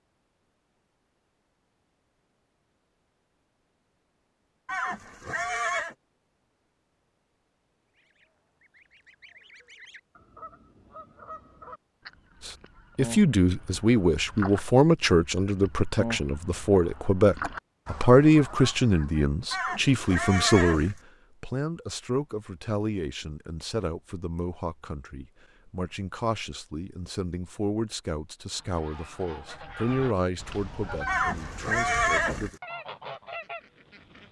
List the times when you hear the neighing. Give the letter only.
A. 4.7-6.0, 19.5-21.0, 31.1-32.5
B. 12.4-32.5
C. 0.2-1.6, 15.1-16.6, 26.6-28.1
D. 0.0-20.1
A.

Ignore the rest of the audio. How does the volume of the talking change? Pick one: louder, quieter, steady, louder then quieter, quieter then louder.
quieter.